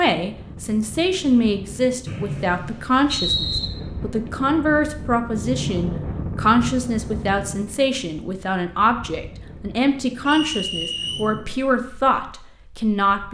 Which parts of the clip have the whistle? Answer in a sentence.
The whistle can be heard from 2.0 to 3.6 s and from 10.2 to 11.2 s.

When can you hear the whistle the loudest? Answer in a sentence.
The loudest moment of the whistle is at 3 seconds.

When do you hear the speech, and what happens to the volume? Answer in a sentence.
The speech can be heard from 0.0 to 13.2 s, at a steady volume.